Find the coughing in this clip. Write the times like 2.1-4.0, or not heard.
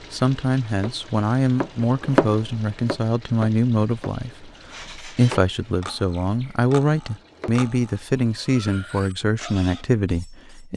not heard.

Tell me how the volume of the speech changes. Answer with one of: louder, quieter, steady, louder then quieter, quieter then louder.
steady.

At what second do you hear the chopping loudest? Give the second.
2 s.